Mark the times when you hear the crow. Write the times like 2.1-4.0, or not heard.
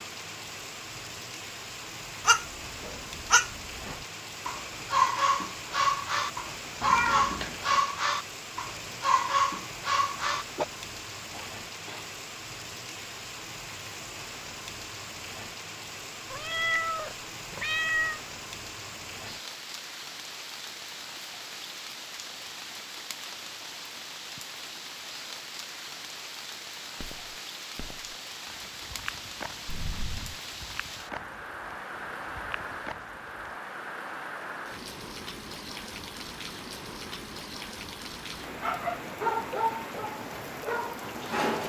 not heard.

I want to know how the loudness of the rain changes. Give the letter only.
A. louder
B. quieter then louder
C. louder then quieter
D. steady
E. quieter
D.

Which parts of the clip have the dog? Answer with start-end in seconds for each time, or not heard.
2.2-10.7, 38.6-41.6.